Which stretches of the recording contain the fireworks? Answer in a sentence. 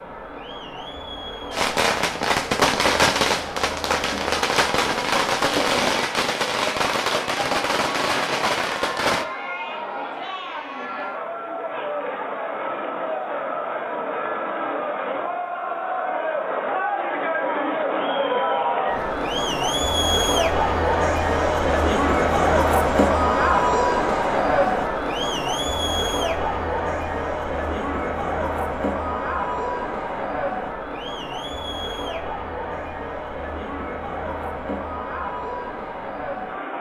You can hear the fireworks from 1.5 to 9.2 s.